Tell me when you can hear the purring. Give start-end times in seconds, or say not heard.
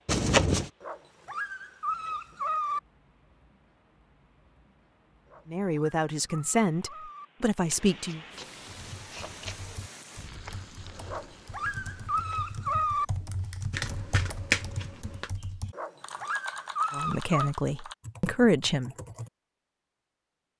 not heard.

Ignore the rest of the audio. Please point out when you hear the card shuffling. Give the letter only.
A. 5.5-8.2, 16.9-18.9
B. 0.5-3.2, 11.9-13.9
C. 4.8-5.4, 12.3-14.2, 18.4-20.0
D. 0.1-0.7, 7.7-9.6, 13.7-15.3
D.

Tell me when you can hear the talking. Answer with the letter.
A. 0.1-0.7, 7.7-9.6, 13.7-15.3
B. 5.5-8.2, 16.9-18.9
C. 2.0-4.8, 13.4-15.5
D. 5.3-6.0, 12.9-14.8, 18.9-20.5
B.